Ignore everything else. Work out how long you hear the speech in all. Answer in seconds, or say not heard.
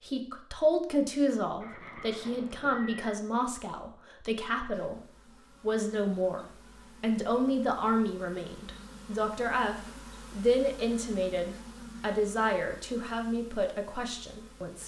15 s.